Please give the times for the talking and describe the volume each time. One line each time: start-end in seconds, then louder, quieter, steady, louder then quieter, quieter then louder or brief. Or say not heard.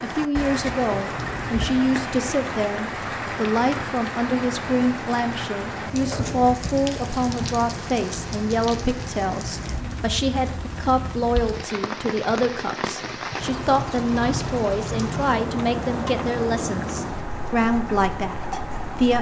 0.0-19.1 steady.